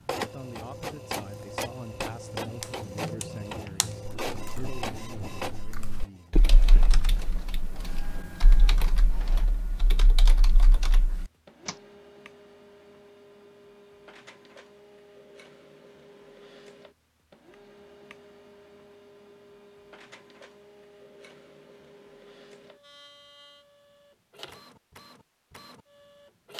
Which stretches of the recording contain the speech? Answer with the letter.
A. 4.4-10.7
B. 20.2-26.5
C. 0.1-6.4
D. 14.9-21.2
C.